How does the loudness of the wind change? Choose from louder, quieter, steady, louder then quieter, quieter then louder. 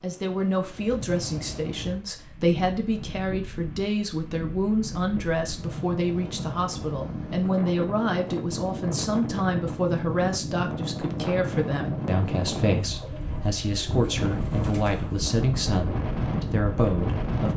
louder.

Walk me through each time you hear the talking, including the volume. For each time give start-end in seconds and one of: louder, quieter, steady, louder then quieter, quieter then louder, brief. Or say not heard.
0.0-17.5 steady.